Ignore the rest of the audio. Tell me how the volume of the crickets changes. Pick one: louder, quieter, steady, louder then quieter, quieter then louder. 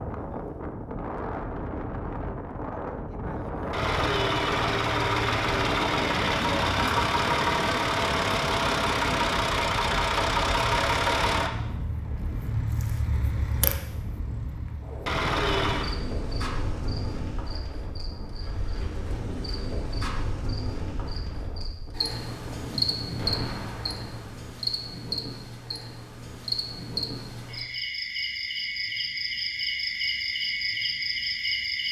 louder.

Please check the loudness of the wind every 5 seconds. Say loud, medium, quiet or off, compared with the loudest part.
loud, loud, medium, medium, medium, off, off.